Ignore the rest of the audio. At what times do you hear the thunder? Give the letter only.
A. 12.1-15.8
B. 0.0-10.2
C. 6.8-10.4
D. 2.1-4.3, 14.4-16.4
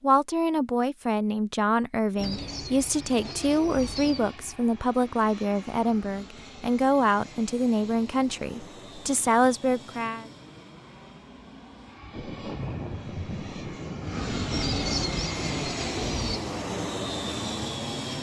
A.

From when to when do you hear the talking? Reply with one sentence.
The talking can be heard from 0.0 to 10.2 s.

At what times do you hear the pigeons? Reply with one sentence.
The pigeons can be heard from 2.1 to 4.3 s and from 14.4 to 16.4 s.